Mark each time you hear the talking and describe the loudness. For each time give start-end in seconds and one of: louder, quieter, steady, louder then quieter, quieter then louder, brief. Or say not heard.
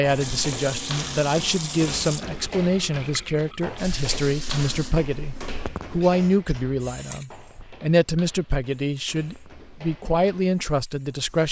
0.0-11.4 steady.